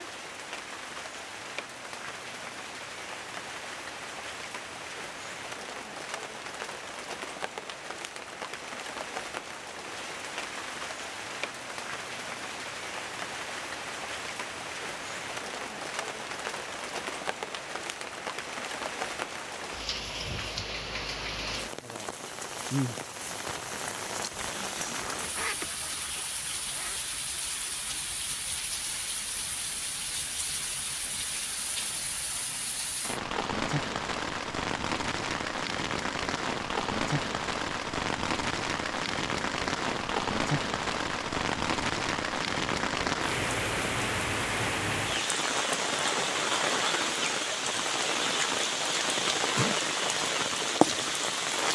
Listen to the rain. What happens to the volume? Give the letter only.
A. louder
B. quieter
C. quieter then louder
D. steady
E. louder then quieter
A.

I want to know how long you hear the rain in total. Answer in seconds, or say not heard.
52 s.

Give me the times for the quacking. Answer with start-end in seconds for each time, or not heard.
24.8-28.1.